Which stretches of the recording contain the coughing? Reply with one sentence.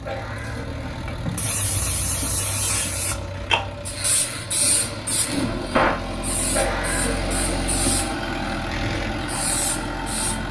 You can hear the coughing from 0.1 to 1.1 s and from 6.5 to 7.7 s.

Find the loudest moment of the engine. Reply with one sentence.
The volume of the engine peaks at 8 seconds.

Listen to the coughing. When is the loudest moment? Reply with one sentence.
The loudest moment of the coughing is at 7 seconds.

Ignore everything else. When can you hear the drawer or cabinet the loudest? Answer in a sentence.
The volume of the drawer or cabinet peaks at 6 seconds.